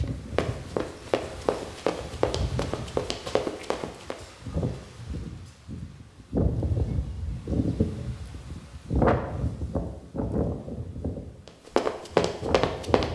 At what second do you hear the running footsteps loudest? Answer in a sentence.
The loudest moment of the running footsteps is at 12 seconds.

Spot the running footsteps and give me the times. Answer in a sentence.
The running footsteps can be heard from 0.3 to 4.2 s and from 11.4 to 13.1 s.